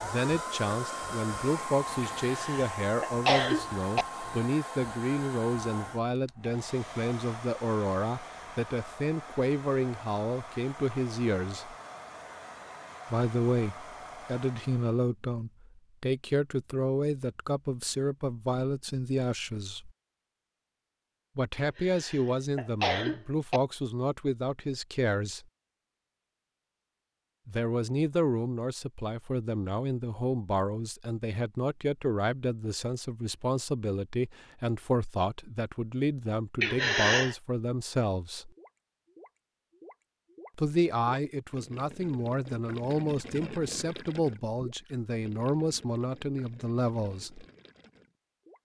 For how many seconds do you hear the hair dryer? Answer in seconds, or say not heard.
15 s.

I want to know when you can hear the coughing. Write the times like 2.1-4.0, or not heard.
2.2-4.0, 21.6-23.6, 36.6-37.4.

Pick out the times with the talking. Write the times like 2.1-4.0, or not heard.
0.0-11.8, 13.1-19.9, 21.4-25.4, 27.4-38.5, 40.5-47.5.